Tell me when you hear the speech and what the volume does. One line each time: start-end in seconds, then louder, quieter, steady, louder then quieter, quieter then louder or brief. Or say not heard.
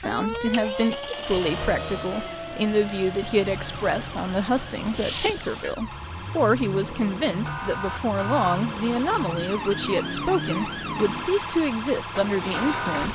0.0-13.1 steady.